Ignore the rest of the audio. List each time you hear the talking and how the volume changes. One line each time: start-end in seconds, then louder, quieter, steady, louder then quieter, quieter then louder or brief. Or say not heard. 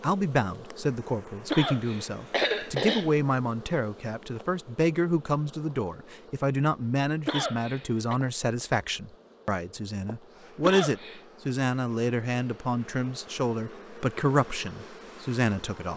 0.0-15.9 steady.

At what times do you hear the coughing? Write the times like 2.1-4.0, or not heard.
1.5-3.1, 7.2-8.2, 10.6-11.2.